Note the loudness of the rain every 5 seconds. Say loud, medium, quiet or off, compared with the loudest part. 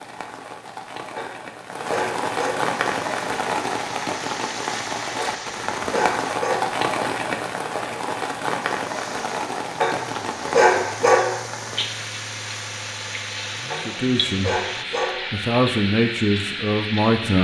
loud, loud, medium, loud.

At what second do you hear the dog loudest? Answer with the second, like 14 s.
11 s.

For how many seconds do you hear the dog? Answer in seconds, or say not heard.
6 s.